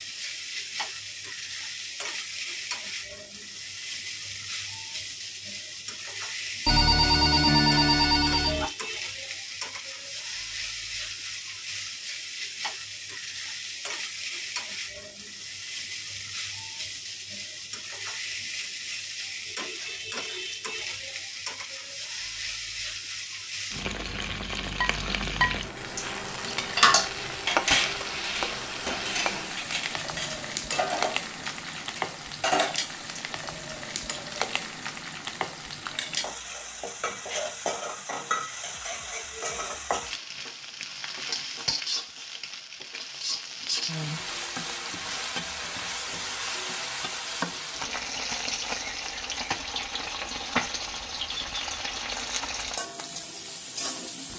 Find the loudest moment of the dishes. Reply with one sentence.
The volume of the dishes peaks at 27 seconds.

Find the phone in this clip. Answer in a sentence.
You can hear the phone from 6.7 to 8.7 s.